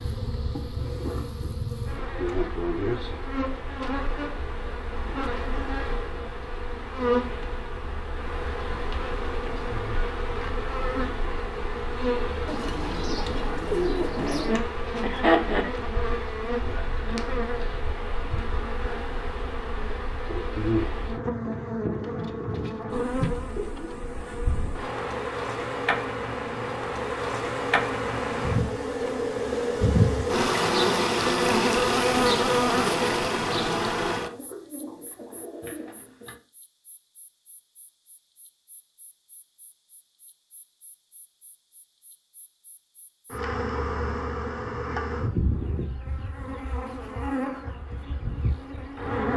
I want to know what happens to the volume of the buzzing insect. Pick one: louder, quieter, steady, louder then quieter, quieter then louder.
louder then quieter.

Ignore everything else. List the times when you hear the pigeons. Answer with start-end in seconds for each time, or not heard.
12.4-14.6, 22.0-24.1, 34.1-36.4.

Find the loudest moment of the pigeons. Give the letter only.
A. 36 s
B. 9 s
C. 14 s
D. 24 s
C.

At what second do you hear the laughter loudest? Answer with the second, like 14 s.
15 s.